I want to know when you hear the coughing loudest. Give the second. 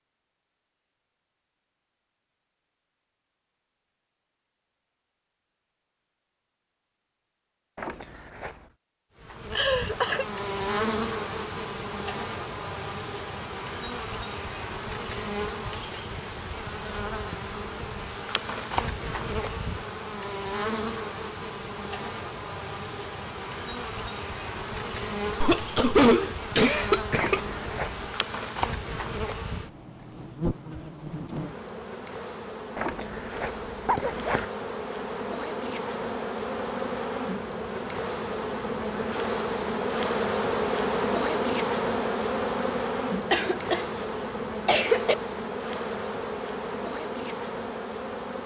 26 s.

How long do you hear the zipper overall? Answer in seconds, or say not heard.
4 s.